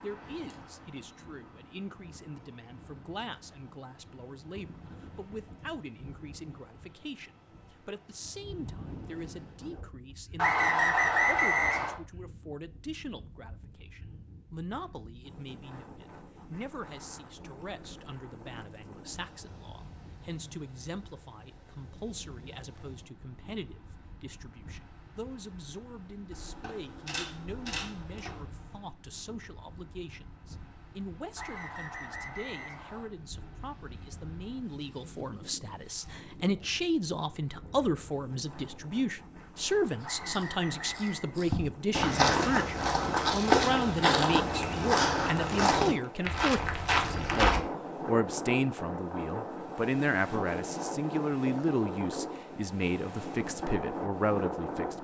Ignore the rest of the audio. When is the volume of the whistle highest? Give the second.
11 s.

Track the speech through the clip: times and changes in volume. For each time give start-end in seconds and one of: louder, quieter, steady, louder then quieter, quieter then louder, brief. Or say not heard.
0.0-54.9 louder.